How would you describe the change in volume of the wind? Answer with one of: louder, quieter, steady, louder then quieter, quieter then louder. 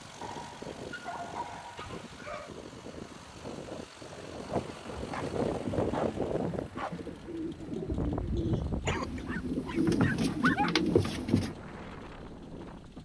louder then quieter.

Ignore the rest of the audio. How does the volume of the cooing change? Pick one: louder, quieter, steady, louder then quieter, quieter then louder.
louder.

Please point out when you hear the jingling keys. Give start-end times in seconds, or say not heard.
not heard.